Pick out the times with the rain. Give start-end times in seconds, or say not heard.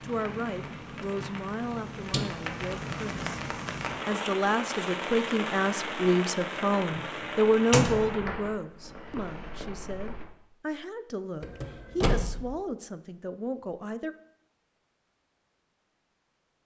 0.0-10.2.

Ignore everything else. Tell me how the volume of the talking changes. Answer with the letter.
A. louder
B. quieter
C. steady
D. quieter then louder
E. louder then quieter
E.